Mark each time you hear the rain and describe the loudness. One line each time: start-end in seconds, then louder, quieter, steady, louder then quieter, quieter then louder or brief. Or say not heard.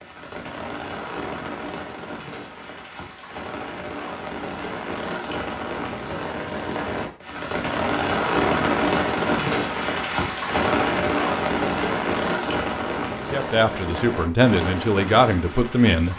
0.0-16.1 louder then quieter.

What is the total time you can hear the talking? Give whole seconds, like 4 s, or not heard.
3 s.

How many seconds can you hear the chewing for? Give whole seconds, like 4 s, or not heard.
not heard.